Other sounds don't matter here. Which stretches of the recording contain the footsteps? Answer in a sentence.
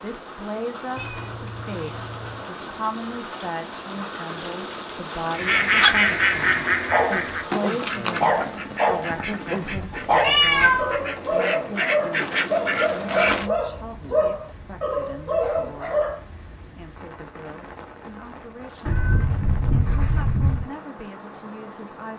The footsteps can't be heard in this clip.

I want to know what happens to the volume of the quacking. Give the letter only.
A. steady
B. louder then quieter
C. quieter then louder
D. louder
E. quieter
C.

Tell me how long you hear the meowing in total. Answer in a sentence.
You can hear the meowing for 5 seconds altogether.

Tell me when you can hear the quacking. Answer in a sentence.
You can hear the quacking from 5.3 to 13.5 s.